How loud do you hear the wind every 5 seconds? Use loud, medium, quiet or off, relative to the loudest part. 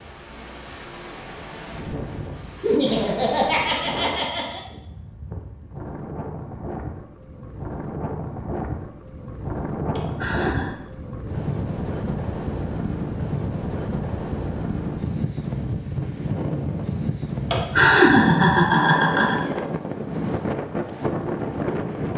medium, medium, loud, loud, loud.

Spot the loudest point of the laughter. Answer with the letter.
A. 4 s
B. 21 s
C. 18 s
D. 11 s
C.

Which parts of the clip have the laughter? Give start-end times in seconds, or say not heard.
2.6-4.6, 9.9-10.8, 17.5-19.4.